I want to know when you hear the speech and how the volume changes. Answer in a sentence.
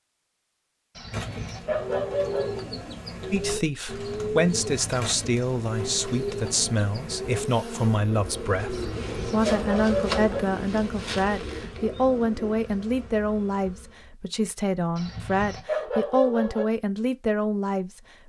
You can hear the speech from 3.3 to 18.2 s, at a steady volume.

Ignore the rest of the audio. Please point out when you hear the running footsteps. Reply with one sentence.
You can't hear the running footsteps here.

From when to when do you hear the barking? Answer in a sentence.
You can hear the barking from 0.9 to 2.5 s, from 8.7 to 10.4 s and from 14.9 to 16.6 s.